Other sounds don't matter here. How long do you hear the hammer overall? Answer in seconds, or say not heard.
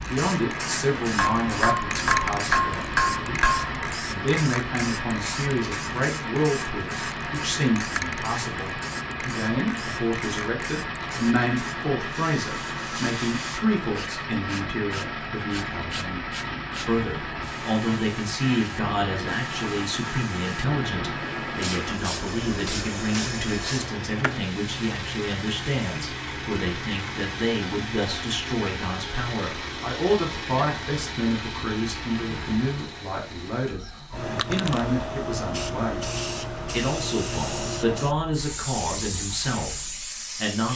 3 s.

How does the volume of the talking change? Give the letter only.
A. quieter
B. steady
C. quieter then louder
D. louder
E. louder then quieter
B.